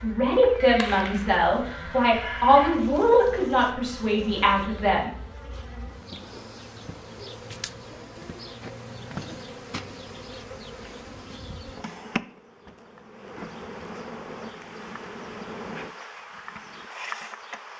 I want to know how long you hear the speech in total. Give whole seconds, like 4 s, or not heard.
5 s.